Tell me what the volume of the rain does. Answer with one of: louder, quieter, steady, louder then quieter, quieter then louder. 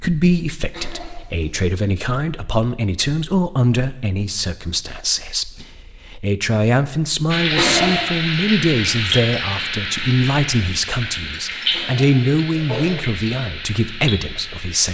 quieter.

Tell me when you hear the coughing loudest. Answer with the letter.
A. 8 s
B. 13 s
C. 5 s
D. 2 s
A.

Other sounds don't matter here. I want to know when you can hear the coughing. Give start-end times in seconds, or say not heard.
0.7-1.6, 7.5-8.1, 11.7-12.9.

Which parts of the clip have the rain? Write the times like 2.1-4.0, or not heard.
7.3-14.8.